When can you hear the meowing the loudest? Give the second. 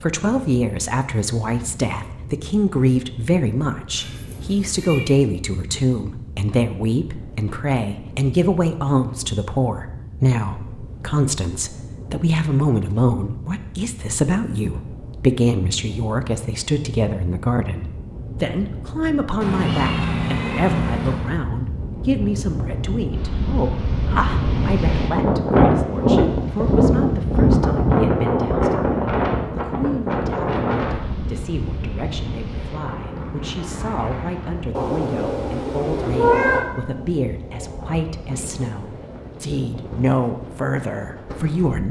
36 s.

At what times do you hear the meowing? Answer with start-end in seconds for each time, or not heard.
4.0-5.2, 19.4-21.4, 34.7-36.6.